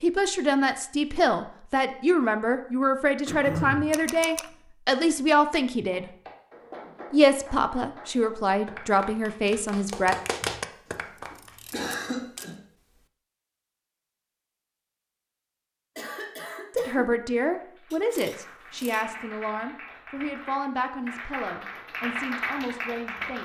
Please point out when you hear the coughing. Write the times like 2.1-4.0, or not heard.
3.2-3.9, 10.8-12.6, 15.9-17.1.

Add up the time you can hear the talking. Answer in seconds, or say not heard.
16 s.